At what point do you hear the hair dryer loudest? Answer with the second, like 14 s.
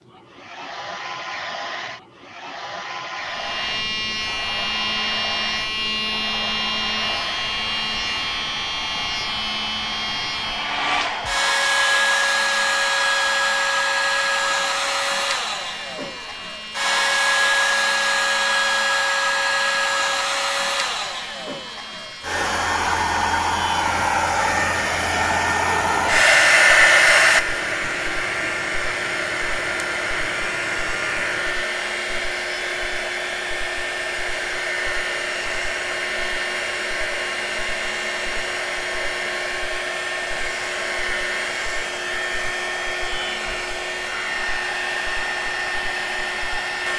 27 s.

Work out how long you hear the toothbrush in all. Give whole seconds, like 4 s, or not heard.
not heard.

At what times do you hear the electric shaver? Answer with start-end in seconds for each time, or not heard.
3.2-46.9.